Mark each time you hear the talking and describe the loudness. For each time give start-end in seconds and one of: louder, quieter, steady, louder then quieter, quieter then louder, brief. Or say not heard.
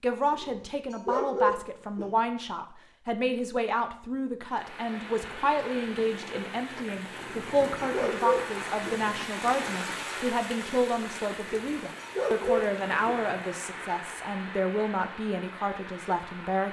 0.0-16.6 steady.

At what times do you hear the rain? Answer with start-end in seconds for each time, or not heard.
4.5-16.6.